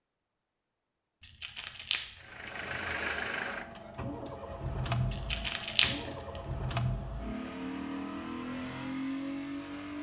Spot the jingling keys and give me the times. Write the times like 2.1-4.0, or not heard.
1.2-2.4, 5.1-6.2.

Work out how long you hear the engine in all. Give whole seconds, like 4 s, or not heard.
8 s.